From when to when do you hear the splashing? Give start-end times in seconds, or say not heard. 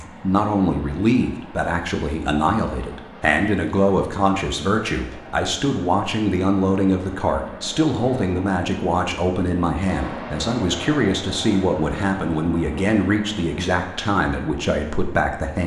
not heard.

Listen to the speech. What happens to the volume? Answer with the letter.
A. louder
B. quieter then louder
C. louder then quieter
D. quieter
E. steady
E.